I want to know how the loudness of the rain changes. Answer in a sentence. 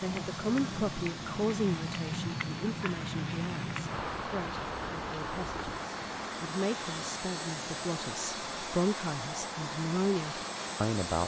The loudness of the rain goes down.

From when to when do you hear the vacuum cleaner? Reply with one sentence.
The vacuum cleaner can be heard from 0.0 to 11.2 s.